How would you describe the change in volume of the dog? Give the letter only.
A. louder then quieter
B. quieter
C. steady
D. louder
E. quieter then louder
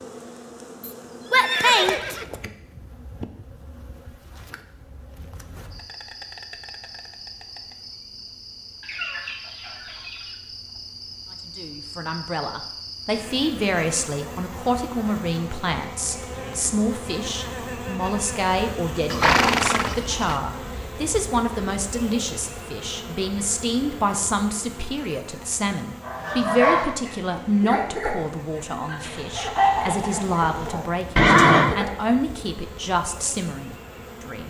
B.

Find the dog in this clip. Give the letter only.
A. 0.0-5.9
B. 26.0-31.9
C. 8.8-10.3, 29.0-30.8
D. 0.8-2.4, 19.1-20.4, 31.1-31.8
B.